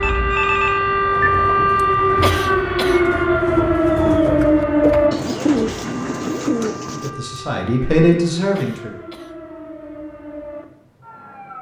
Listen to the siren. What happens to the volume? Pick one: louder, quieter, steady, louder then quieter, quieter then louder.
quieter.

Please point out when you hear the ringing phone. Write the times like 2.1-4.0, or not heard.
0.0-1.3.